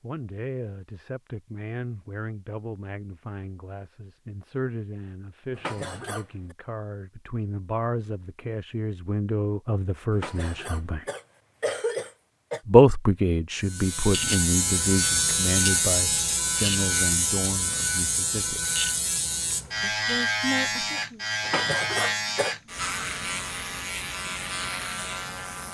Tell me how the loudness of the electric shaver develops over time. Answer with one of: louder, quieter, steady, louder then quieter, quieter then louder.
quieter.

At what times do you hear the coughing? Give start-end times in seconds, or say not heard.
5.5-6.5, 10.2-12.6, 21.4-22.6.